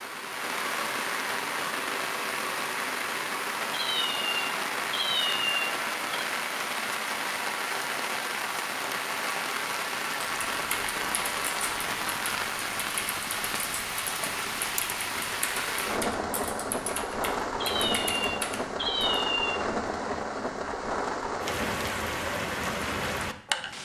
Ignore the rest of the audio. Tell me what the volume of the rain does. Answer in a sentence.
The loudness of the rain stays about the same.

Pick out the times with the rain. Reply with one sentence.
You can hear the rain from 0.0 to 23.7 s.